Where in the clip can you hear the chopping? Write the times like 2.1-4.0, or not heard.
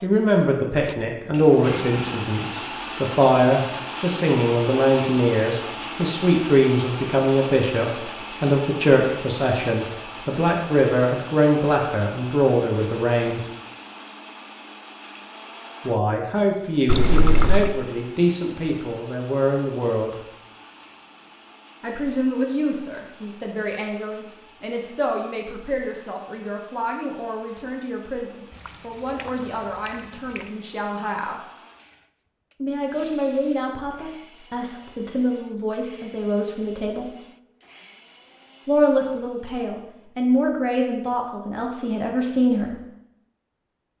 not heard.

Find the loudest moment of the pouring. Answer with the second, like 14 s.
17 s.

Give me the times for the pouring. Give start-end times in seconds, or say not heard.
16.9-17.8, 28.5-30.5.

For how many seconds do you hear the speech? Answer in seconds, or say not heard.
36 s.